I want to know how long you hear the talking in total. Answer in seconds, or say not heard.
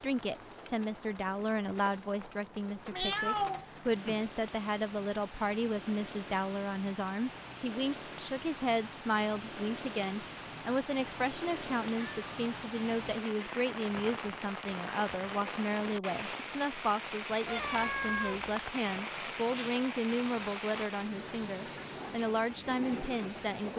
24 s.